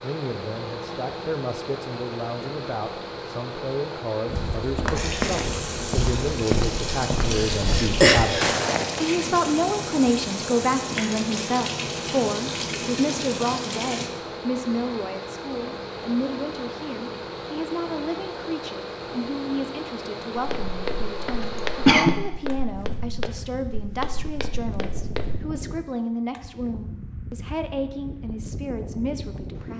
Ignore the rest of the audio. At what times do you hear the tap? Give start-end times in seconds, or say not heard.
5.0-14.1.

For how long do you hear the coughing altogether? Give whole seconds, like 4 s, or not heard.
2 s.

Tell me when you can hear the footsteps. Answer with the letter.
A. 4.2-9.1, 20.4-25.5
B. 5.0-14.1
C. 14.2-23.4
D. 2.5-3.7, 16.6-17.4
A.